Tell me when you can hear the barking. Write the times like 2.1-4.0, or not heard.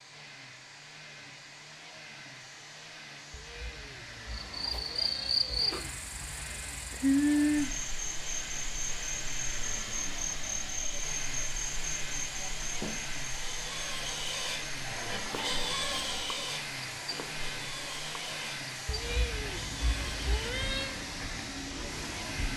not heard.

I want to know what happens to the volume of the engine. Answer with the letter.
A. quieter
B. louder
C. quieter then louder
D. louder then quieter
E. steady
B.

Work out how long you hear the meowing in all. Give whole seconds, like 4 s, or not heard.
5 s.